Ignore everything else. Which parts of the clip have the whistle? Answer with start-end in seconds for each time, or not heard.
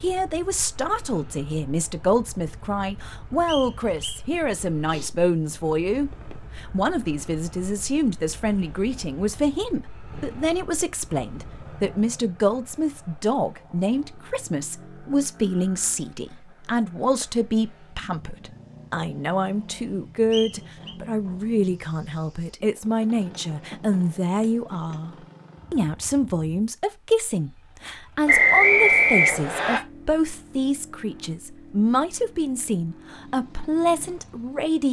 3.5-4.2, 20.3-20.9, 28.2-29.8.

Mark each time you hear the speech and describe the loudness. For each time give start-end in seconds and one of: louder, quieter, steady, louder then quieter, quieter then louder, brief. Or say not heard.
0.0-34.8 steady.